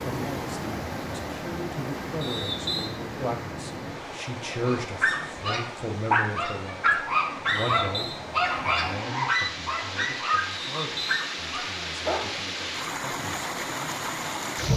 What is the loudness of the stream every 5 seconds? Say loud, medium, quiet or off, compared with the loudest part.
loud, medium, loud.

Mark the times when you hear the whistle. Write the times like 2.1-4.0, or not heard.
2.2-2.9, 7.5-8.2, 10.6-11.3.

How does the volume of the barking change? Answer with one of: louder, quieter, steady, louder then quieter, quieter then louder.
quieter.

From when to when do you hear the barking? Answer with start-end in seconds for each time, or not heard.
4.6-12.3.